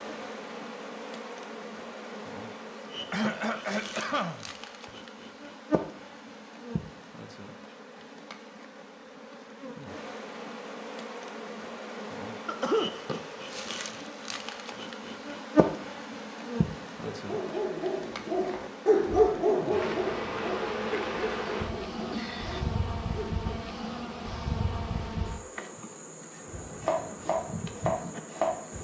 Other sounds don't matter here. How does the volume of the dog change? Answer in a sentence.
The volume of the dog goes up, then down.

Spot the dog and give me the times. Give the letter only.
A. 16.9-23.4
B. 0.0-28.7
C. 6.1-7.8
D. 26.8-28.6
A.